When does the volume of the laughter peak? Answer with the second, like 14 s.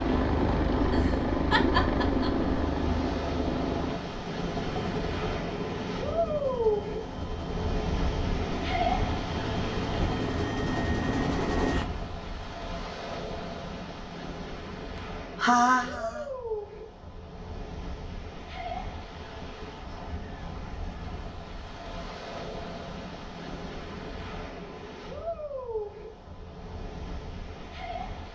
16 s.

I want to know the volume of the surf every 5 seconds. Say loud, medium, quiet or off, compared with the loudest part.
medium, loud, medium, medium, medium, medium.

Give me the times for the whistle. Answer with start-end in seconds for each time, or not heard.
not heard.